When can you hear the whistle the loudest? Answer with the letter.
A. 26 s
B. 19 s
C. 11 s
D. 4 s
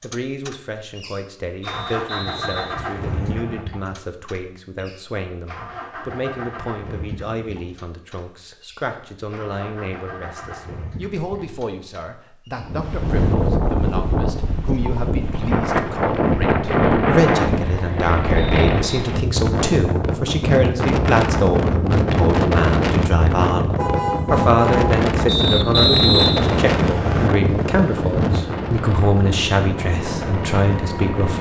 A.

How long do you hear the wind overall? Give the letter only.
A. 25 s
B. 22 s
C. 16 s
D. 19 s
D.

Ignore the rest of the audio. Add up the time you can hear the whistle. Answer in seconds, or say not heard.
5 s.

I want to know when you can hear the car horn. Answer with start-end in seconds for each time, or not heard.
23.8-24.9.